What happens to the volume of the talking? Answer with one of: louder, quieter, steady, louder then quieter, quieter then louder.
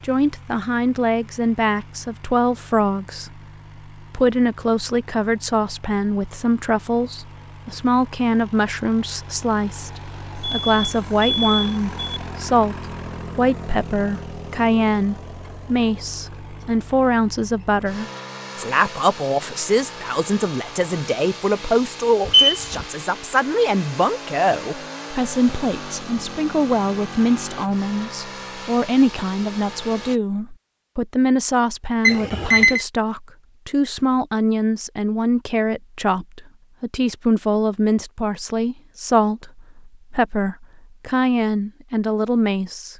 steady.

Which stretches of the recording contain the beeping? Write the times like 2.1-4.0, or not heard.
10.3-12.2, 22.2-22.9, 32.0-32.9.